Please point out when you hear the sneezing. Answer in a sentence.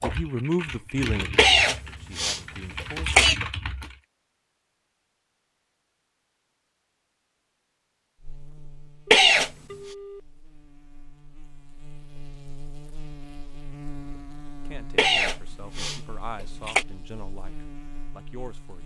The sneezing can be heard from 1.4 to 3.4 s, from 9.1 to 9.5 s and from 14.9 to 16.9 s.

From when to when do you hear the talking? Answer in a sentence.
The talking can be heard from 0.0 to 3.2 s and from 14.7 to 18.8 s.